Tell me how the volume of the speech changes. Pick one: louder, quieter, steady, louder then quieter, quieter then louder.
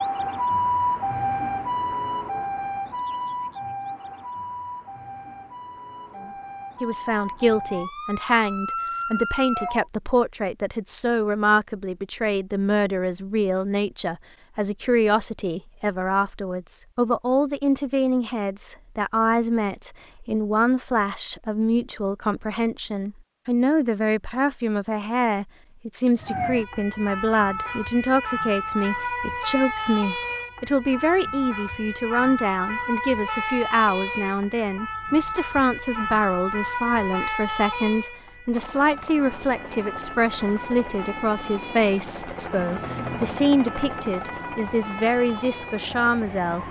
steady.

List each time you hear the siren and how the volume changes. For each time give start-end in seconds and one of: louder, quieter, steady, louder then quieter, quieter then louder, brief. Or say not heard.
0.0-9.8 quieter then louder
26.1-46.6 quieter.